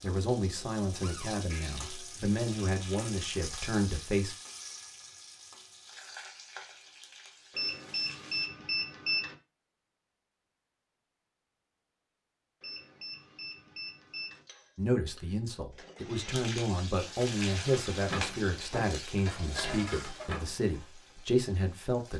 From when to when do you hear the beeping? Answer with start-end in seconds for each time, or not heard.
7.5-9.3, 12.6-14.4.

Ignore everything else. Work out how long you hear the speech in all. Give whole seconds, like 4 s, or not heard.
12 s.